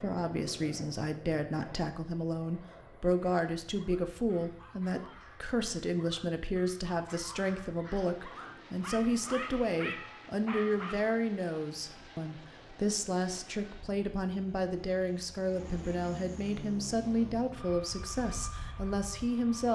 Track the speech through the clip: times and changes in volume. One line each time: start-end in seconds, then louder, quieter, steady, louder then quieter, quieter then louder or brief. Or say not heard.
0.0-19.7 steady.